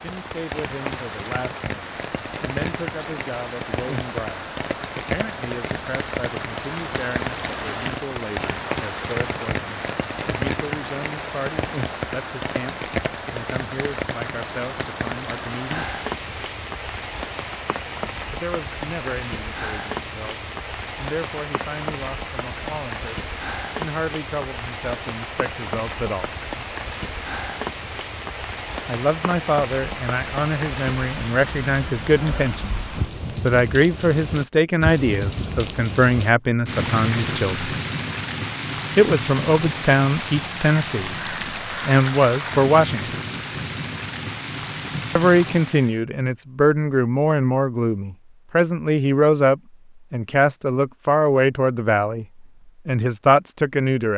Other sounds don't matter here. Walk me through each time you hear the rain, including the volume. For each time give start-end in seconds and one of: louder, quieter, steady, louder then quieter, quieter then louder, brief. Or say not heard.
0.0-46.0 steady.